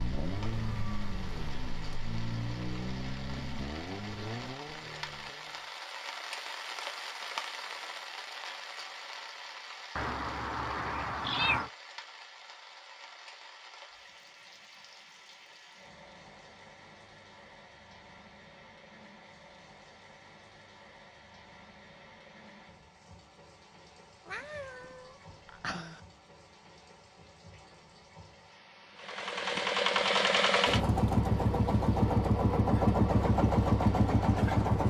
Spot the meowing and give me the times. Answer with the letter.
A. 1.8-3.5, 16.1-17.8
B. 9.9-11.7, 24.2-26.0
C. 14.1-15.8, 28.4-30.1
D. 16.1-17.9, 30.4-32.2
B.